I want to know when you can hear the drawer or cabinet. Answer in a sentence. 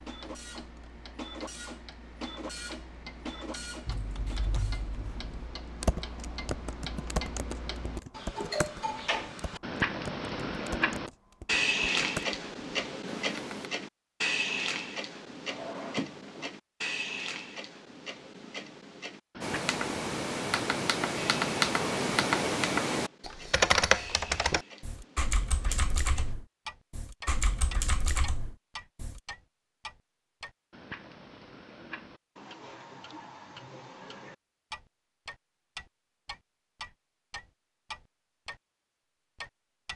The drawer or cabinet can be heard from 15.4 to 16.5 s.